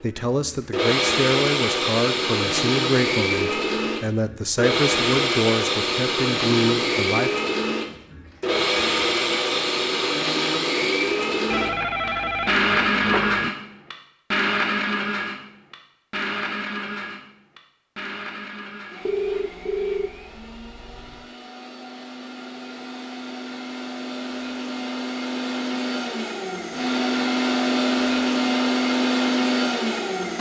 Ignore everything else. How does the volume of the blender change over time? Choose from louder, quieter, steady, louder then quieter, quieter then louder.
quieter then louder.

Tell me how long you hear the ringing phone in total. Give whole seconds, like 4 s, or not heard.
4 s.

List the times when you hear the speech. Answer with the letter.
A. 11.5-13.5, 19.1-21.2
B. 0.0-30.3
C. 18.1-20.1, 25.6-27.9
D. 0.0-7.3
D.